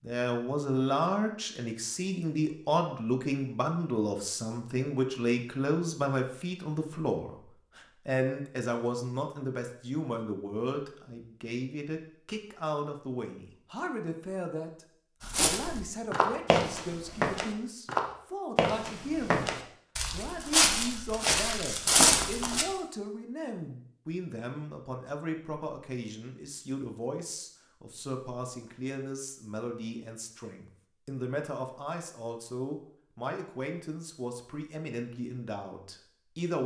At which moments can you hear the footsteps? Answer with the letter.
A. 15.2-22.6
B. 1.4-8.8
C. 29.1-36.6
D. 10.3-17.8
A.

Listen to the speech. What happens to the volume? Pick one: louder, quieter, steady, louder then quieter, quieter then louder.
quieter.